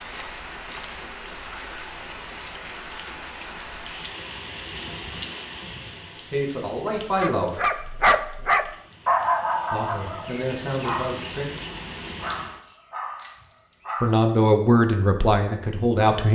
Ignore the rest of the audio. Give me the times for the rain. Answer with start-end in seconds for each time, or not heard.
0.0-12.6.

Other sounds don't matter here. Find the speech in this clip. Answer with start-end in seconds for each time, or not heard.
6.3-7.7, 9.7-11.4, 14.0-16.3.